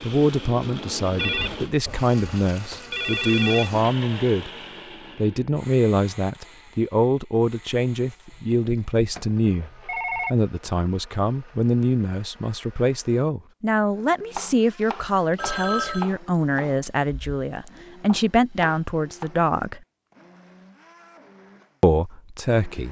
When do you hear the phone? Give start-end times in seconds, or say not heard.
1.1-3.7, 8.3-10.3, 15.3-16.1.